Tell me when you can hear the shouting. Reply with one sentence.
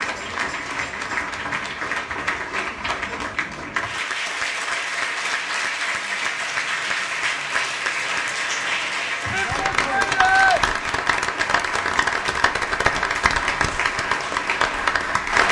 You can hear the shouting from 9.3 to 10.6 s.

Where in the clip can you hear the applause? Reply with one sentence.
The applause can be heard from 0.0 to 15.4 s.